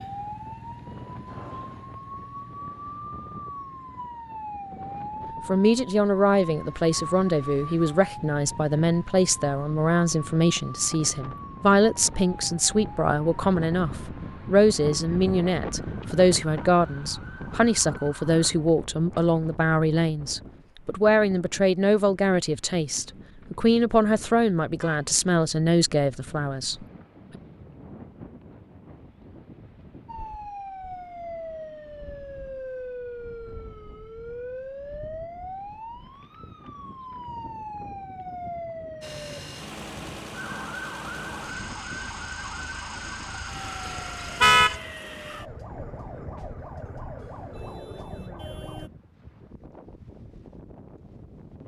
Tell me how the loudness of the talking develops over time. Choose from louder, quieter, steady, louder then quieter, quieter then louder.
steady.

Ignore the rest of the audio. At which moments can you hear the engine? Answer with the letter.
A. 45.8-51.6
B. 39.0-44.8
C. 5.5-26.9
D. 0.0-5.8
B.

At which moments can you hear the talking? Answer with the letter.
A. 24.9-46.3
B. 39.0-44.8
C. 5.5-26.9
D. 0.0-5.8
C.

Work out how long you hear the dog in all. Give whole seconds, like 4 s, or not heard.
not heard.